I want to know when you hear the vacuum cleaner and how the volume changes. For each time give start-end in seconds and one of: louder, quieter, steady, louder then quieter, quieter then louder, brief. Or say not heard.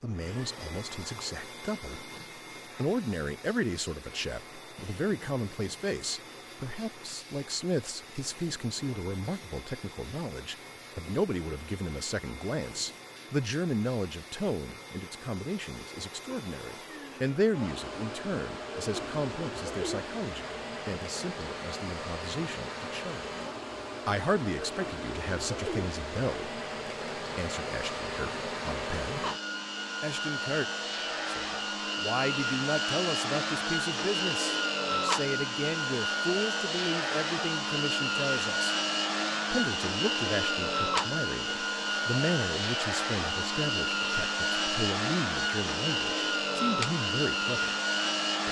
0.0-48.4 louder.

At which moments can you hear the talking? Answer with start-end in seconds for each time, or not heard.
0.0-2.1, 2.8-23.3, 24.1-29.2, 30.0-38.8, 39.5-47.8.